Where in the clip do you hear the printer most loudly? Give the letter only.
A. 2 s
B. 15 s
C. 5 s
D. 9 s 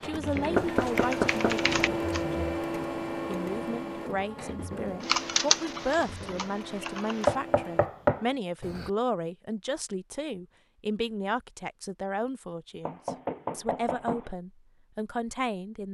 A.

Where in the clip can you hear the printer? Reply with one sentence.
You can hear the printer from 0.0 to 7.9 s.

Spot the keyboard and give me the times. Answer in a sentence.
You can hear the keyboard from 0.1 to 2.2 s and from 5.0 to 7.3 s.